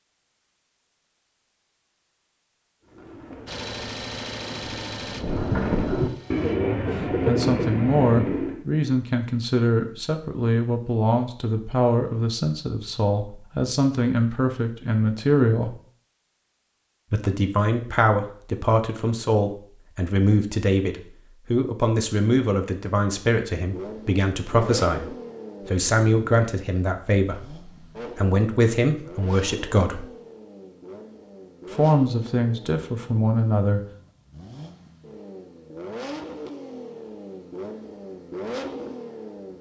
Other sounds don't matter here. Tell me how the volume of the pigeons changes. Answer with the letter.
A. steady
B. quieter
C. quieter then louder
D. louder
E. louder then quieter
D.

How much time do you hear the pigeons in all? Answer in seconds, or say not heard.
6 s.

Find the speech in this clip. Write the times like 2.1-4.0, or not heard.
6.6-15.8, 17.1-30.1, 31.7-33.8.